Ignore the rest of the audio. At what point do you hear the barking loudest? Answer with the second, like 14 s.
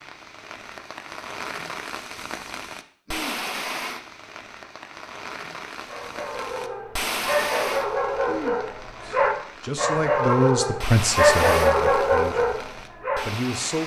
11 s.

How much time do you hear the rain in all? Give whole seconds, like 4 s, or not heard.
14 s.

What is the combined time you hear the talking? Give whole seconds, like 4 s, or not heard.
5 s.